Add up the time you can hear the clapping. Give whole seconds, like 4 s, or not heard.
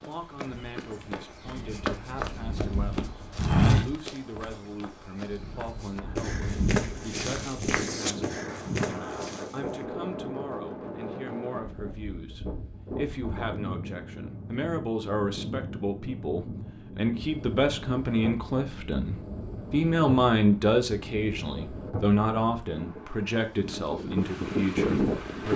not heard.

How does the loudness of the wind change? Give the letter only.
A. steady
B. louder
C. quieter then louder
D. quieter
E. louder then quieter
B.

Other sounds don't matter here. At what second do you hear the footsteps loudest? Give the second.
4 s.